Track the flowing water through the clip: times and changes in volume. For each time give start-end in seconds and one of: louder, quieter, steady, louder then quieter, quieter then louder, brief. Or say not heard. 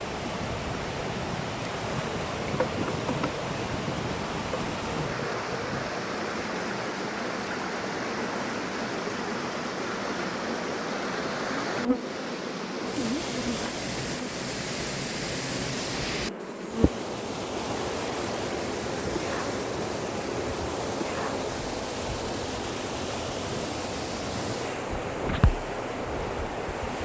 0.0-27.0 steady.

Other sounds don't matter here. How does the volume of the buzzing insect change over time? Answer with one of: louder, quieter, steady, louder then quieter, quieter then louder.
steady.